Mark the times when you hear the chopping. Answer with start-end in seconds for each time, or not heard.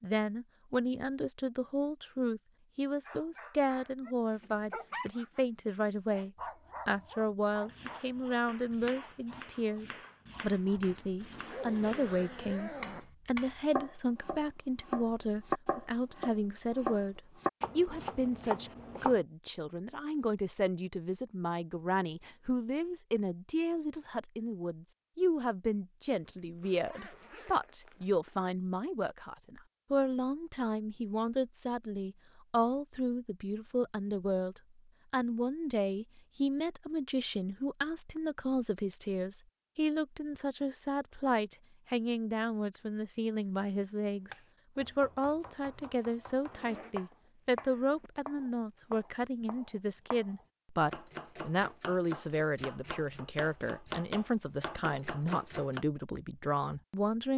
7.6-19.2, 44.2-55.9.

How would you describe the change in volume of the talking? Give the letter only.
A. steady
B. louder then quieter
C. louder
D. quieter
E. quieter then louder
A.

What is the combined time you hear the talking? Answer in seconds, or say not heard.
57 s.